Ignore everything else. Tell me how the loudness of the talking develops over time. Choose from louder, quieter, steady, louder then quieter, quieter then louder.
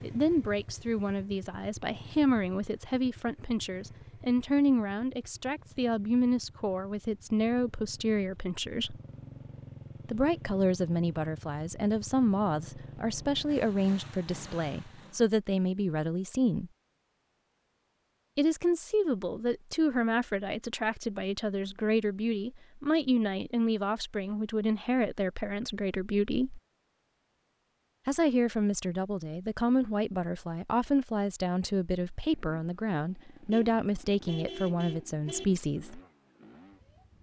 steady.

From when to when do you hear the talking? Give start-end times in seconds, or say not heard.
0.0-9.0, 10.1-16.7, 18.4-26.6, 28.1-36.0.